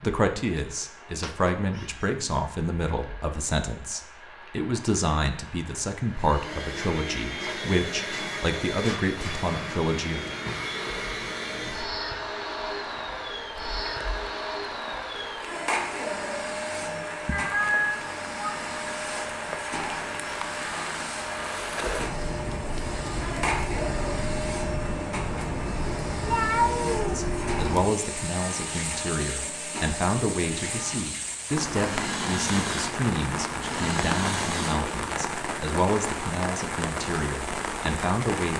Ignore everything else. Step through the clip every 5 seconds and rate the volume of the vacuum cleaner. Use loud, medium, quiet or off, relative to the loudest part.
off, loud, loud, loud, loud, loud, loud, off.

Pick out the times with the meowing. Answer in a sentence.
You can hear the meowing from 1.2 to 2.1 s, from 17.2 to 18.6 s and from 26.2 to 27.2 s.